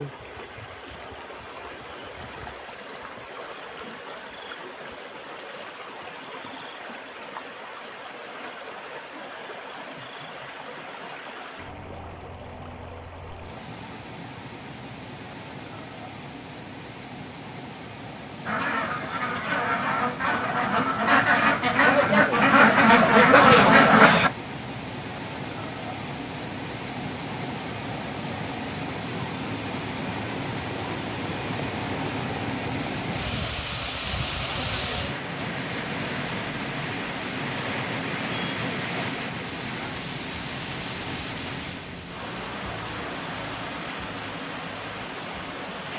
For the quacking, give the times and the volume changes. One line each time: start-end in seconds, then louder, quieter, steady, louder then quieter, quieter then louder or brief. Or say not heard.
18.4-24.3 louder.